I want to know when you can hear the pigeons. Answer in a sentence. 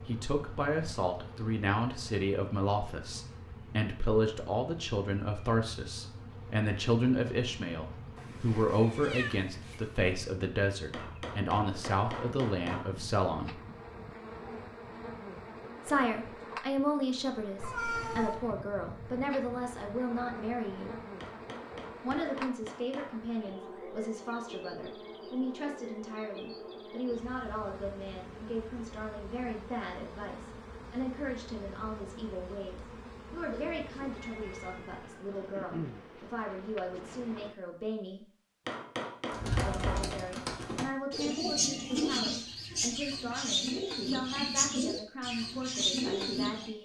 The pigeons can be heard from 39.3 to 46.7 s.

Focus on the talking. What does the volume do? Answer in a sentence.
The volume of the talking goes down.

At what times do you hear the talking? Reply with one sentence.
The talking can be heard from 0.1 to 13.6 s, from 15.8 to 20.9 s, from 22.0 to 38.2 s and from 39.6 to 46.7 s.